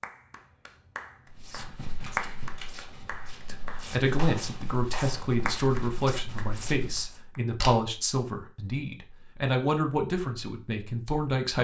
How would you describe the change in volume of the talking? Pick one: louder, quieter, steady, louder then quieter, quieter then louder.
steady.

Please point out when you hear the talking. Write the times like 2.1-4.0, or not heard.
3.5-11.5.